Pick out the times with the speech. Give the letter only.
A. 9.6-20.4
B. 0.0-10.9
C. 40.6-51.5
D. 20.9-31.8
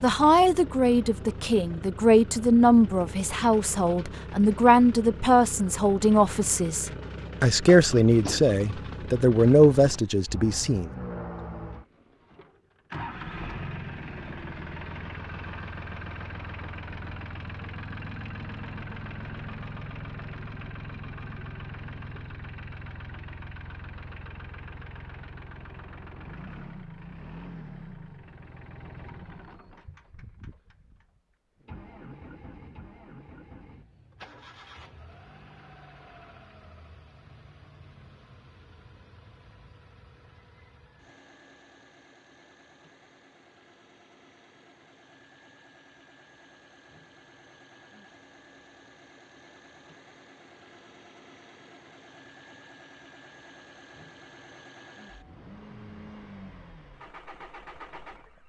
B.